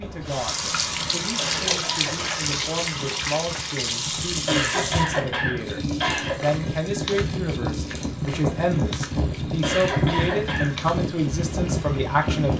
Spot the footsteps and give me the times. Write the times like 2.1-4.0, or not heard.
not heard.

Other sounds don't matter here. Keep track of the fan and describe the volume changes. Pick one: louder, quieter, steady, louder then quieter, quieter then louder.
louder.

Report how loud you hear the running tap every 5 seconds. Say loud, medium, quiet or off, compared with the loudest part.
loud, medium, medium.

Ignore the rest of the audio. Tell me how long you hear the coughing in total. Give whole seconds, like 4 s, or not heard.
4 s.